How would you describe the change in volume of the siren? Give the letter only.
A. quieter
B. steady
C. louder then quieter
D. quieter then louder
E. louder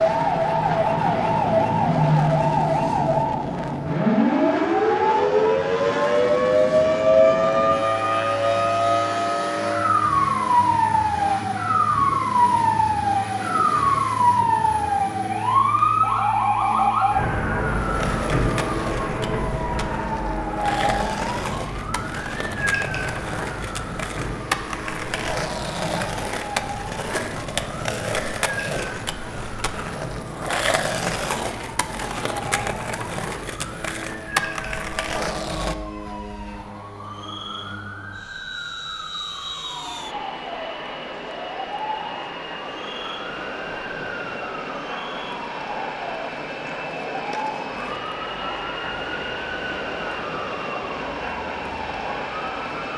A.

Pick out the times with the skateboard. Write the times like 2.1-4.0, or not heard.
17.8-35.8.